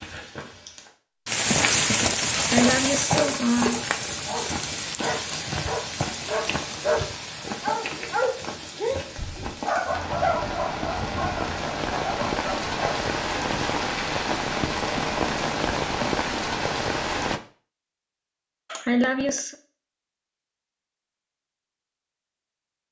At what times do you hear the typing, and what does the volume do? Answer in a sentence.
The typing can't be heard in this clip.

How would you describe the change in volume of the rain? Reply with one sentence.
The loudness of the rain goes down, then up.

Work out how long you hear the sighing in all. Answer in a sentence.
You can hear the sighing for 2 seconds altogether.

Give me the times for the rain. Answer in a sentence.
You can hear the rain from 0.0 to 17.4 s.